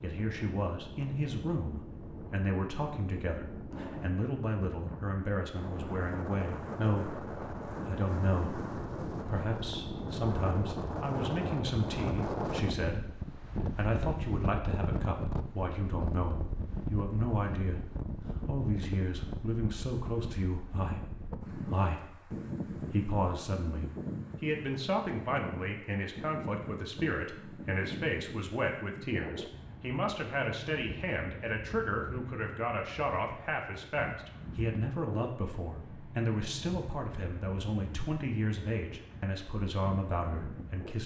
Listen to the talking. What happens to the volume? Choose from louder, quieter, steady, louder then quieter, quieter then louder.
steady.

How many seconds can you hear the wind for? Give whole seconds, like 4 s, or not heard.
41 s.